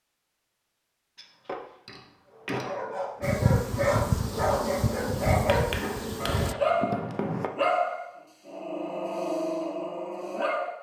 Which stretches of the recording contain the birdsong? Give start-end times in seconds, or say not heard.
not heard.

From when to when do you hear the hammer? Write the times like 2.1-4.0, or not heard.
1.1-2.8, 5.5-7.5.